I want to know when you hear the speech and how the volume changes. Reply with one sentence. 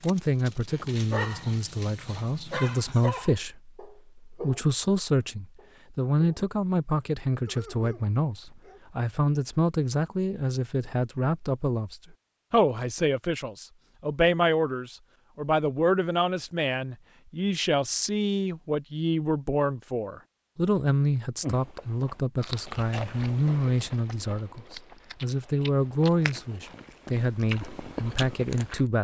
You can hear the speech from 0.0 to 28.9 s, at a steady volume.